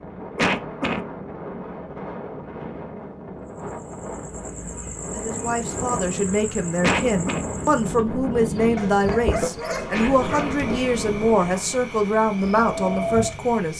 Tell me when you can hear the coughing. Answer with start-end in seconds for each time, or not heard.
0.3-1.0, 6.8-7.5, 9.9-10.6.